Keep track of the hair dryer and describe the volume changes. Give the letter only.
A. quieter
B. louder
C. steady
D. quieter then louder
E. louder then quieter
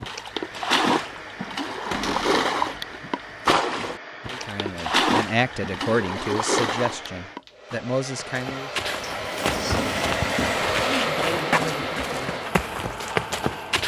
B.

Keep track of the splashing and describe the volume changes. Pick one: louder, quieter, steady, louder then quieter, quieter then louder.
steady.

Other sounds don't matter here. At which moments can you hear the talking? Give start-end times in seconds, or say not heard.
4.2-8.7.